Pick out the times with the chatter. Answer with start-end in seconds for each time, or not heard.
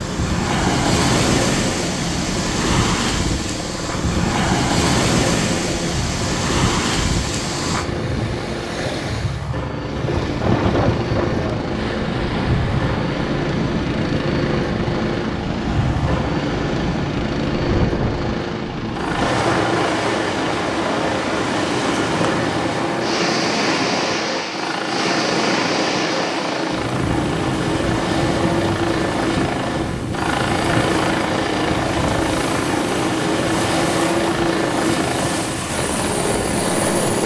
not heard.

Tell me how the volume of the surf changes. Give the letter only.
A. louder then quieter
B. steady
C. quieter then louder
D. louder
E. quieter
E.